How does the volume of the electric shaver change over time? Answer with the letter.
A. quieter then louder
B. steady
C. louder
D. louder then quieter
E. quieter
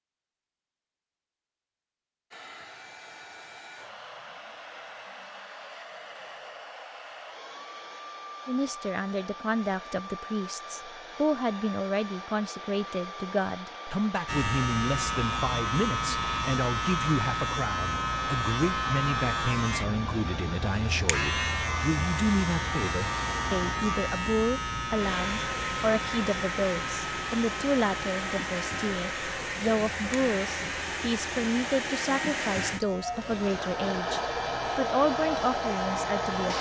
E.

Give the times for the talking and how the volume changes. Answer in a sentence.
The talking can be heard from 8.4 to 36.5 s, at a steady volume.